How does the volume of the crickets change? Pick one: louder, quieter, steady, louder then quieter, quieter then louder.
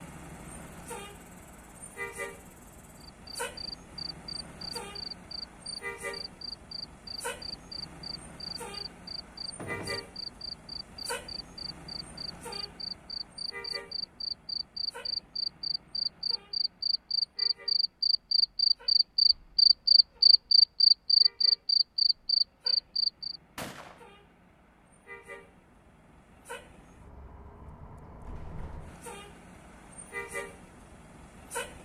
louder.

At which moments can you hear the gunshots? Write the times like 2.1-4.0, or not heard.
9.6-10.1, 23.6-24.1.